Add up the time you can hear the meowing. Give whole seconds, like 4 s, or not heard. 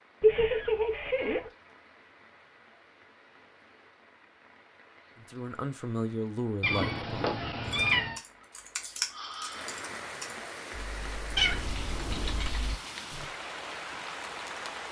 4 s.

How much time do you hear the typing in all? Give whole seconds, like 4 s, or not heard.
6 s.